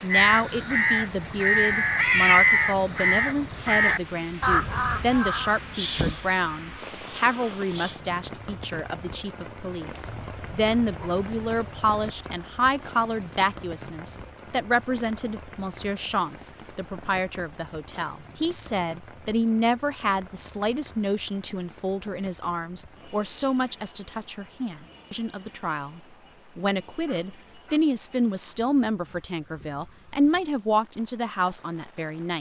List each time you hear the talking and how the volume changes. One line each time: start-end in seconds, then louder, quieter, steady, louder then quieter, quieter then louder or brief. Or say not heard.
0.0-32.3 steady.